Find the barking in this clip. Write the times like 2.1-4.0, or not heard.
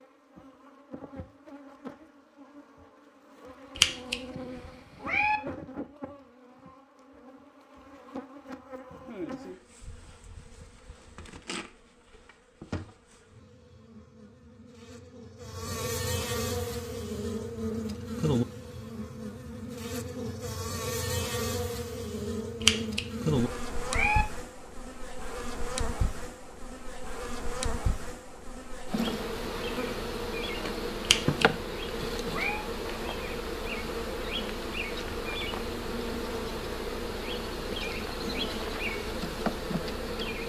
not heard.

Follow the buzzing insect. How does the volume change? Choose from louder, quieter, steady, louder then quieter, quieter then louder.
louder.